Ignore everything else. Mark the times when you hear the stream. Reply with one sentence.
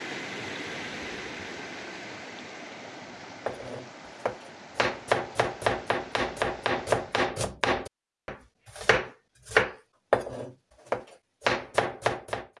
You can hear the stream from 0.0 to 7.3 s.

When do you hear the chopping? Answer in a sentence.
The chopping can be heard from 3.5 to 12.4 s.